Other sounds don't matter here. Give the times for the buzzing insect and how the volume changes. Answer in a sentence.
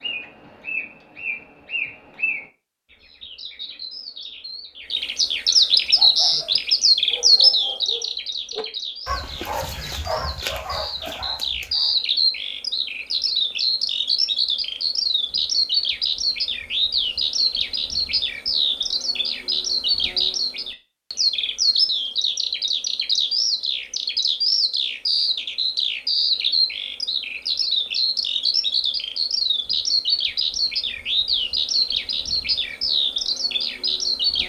You can't hear the buzzing insect here.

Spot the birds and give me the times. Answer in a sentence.
You can hear the birds from 0.0 to 34.4 s.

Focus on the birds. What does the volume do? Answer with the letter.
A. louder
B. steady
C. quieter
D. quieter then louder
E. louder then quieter
B.